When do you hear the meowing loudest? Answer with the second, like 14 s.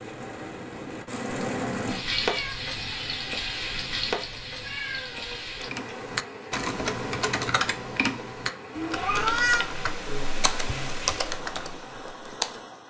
9 s.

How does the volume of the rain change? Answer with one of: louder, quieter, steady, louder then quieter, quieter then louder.
quieter.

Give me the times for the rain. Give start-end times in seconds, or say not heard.
0.0-12.8.